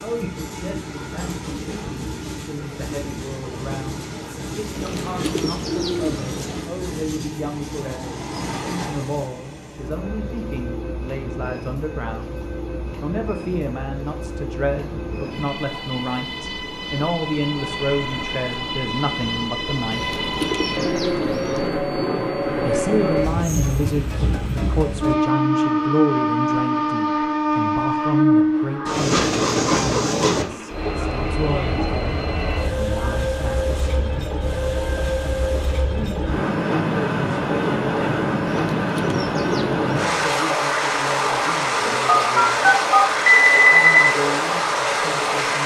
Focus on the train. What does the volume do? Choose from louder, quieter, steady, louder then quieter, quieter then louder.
louder.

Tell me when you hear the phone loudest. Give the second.
44 s.